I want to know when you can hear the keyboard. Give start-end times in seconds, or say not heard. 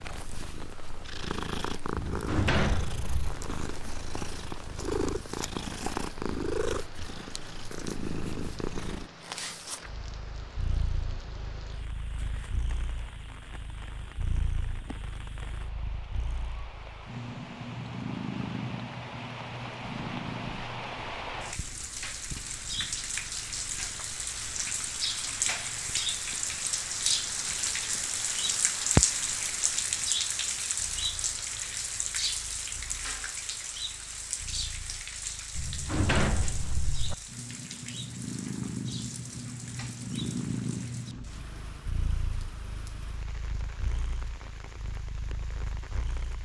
not heard.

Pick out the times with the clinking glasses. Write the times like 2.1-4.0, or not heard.
not heard.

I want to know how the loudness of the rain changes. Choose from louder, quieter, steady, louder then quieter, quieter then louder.
louder then quieter.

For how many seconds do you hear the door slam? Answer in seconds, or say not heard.
3 s.